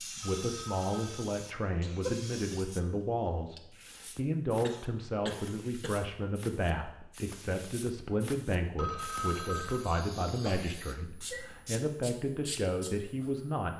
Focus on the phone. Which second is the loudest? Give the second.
9 s.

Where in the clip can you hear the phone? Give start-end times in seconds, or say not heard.
0.2-1.3, 8.8-9.9.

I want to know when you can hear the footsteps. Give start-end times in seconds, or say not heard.
not heard.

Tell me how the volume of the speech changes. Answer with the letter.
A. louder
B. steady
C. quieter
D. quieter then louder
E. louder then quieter
B.